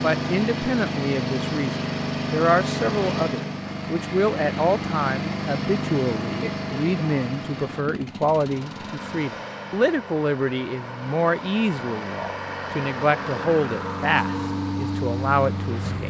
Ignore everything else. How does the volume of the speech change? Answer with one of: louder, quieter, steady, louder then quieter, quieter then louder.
steady.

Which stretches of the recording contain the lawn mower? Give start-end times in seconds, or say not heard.
0.0-16.0.